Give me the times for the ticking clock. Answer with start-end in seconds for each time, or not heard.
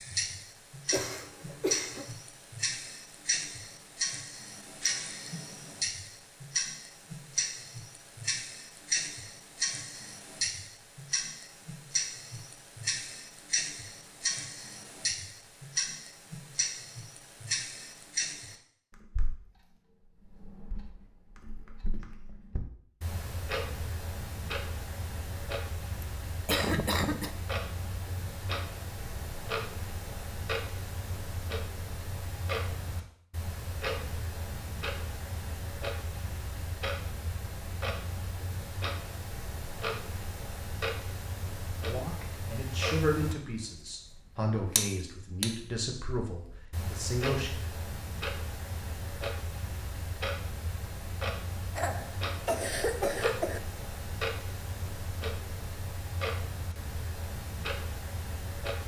0.0-58.8.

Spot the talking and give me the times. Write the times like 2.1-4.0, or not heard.
41.8-47.5.